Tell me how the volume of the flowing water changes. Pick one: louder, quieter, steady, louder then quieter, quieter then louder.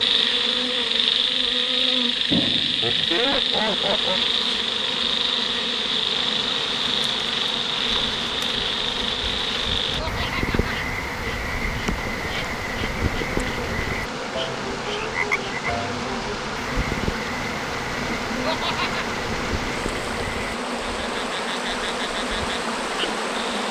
louder.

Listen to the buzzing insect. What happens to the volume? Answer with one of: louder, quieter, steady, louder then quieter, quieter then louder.
steady.